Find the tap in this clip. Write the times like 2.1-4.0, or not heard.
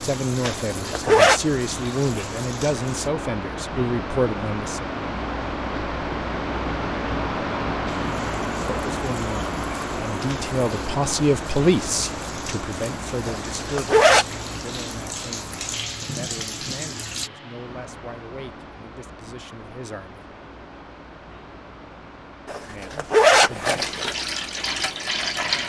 0.0-3.1, 7.8-17.3, 23.6-25.6.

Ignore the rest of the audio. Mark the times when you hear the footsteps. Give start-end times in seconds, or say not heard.
not heard.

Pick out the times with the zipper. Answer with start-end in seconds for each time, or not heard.
0.4-1.4, 13.2-14.2, 22.4-24.1.